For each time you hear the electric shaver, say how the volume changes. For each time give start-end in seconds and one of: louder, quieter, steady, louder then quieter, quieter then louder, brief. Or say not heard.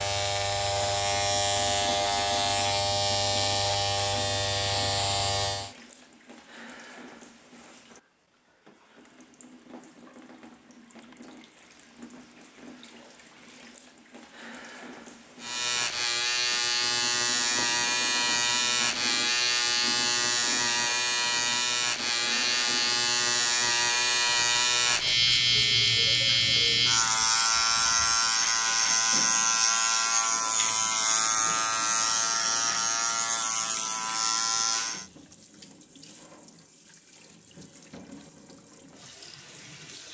0.0-5.8 steady
15.4-35.1 steady.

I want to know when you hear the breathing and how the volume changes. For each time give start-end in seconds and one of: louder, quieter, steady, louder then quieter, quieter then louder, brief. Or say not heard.
not heard.